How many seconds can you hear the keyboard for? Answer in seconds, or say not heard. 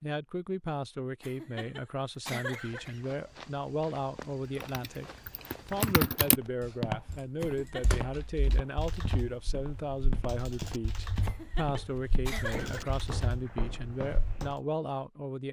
9 s.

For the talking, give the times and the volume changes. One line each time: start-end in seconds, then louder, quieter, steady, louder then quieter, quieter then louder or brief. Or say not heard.
0.0-15.4 steady.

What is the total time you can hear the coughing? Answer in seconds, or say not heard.
4 s.